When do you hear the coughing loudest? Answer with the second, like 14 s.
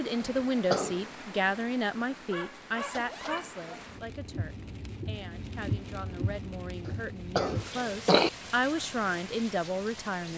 8 s.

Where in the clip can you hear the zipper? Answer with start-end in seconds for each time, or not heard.
2.8-3.4.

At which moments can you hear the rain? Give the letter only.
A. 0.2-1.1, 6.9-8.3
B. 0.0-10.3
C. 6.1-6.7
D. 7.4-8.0
B.